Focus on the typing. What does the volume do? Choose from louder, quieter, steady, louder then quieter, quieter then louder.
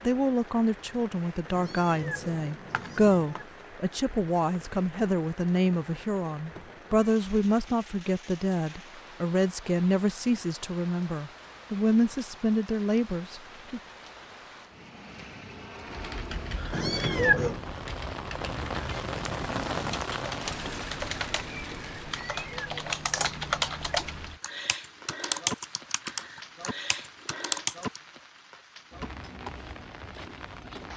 louder.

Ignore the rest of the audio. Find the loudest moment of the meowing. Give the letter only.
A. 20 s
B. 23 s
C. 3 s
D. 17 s
D.